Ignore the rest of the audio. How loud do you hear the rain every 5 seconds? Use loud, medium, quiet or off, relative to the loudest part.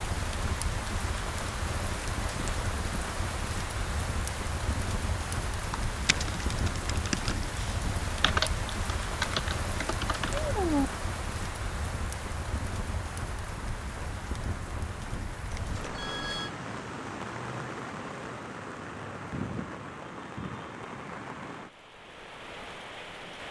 loud, loud, loud, loud, medium.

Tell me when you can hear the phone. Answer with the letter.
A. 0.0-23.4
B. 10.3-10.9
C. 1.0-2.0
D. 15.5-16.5
D.